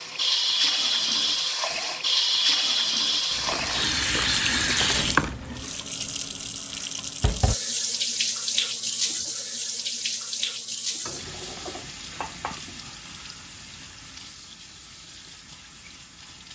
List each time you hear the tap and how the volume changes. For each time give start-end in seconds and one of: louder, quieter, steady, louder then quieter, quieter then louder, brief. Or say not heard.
0.0-16.4 quieter.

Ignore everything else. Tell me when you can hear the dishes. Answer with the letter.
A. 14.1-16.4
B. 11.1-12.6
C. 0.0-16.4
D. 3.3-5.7
B.